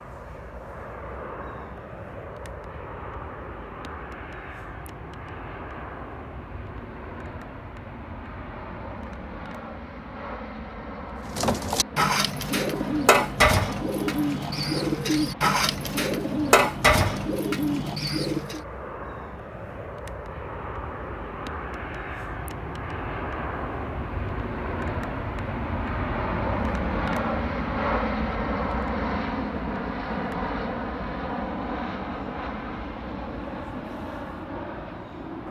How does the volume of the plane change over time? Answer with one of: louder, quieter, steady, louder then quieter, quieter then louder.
louder.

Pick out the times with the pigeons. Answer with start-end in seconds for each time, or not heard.
11.2-18.6.